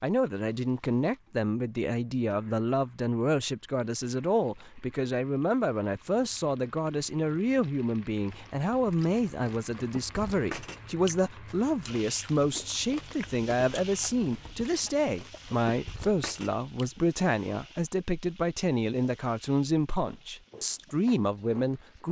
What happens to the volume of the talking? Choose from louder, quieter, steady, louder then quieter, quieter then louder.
steady.